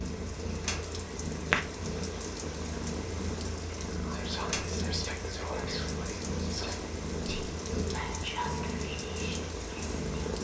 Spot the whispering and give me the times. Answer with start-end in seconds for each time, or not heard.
4.0-10.3.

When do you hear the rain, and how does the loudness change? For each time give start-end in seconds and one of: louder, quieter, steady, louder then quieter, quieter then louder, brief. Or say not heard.
0.0-10.3 steady.